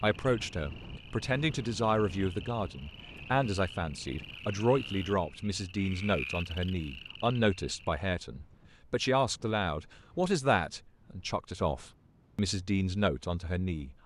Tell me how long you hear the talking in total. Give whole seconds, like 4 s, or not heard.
14 s.